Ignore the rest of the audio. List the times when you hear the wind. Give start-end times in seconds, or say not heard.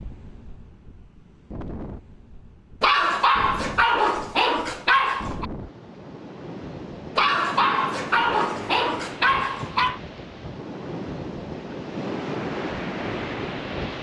0.0-13.9.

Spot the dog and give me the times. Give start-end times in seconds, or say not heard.
2.8-5.5, 7.2-10.0.